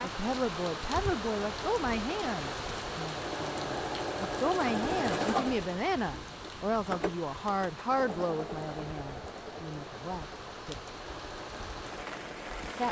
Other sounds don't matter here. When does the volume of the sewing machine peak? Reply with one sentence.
The volume of the sewing machine peaks at 5 seconds.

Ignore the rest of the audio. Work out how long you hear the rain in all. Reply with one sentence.
You can hear the rain for 13 seconds altogether.